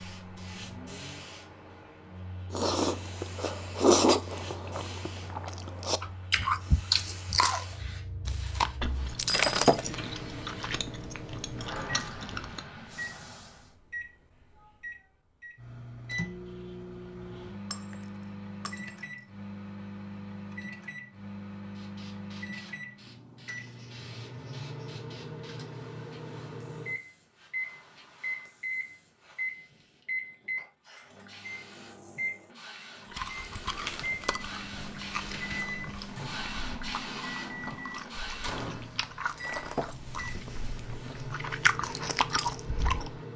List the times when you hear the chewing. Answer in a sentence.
The chewing can be heard from 2.5 to 12.7 s and from 33.1 to 43.2 s.